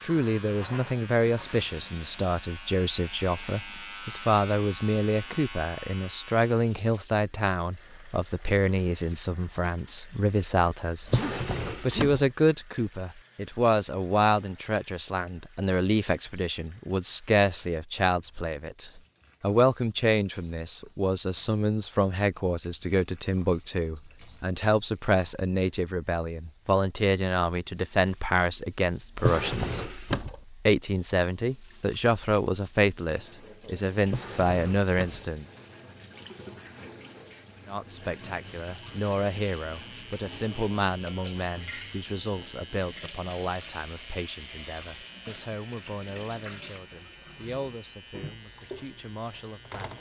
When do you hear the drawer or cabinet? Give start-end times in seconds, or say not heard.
11.0-12.2, 29.1-30.4, 34.0-35.2.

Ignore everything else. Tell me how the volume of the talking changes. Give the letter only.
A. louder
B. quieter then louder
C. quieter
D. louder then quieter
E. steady
C.